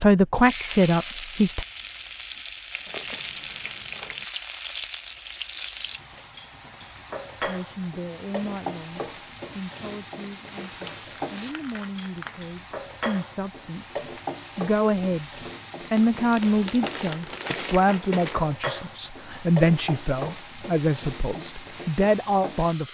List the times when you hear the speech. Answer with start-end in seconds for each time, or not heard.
0.0-1.6, 7.4-15.3, 15.9-22.8.